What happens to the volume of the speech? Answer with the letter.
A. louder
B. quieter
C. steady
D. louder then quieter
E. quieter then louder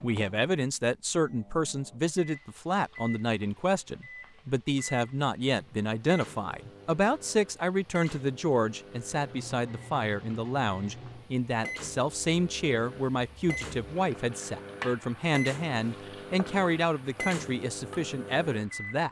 C.